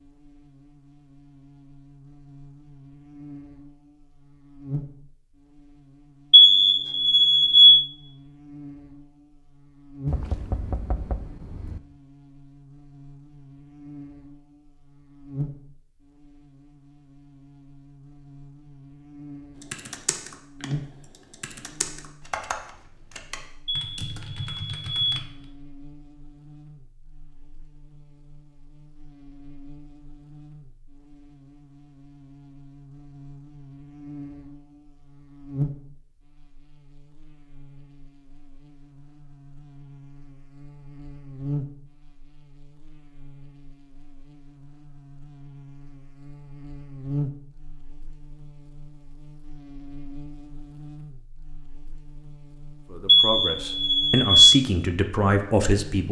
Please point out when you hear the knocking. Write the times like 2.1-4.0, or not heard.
10.1-11.8.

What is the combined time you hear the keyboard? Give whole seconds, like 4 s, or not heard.
6 s.